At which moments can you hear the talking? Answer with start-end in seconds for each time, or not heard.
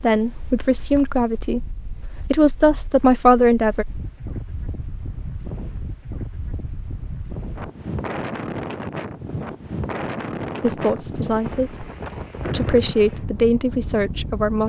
0.0-3.9, 10.6-11.8, 12.5-14.6.